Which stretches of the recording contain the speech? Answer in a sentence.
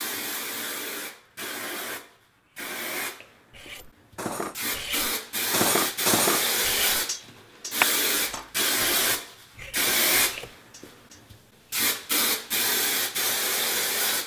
The speech can't be heard in this clip.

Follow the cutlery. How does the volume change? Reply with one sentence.
The loudness of the cutlery goes up, then down.